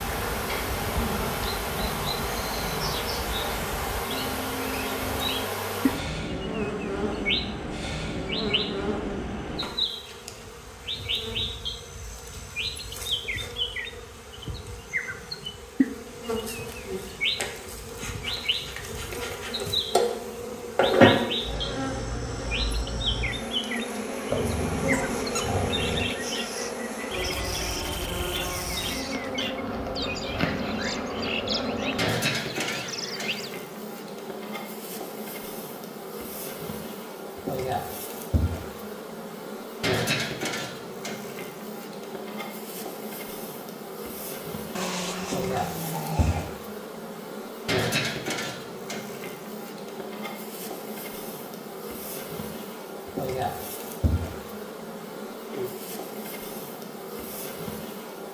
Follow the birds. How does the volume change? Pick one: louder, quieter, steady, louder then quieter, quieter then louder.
steady.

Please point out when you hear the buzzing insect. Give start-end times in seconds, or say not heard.
0.0-58.2.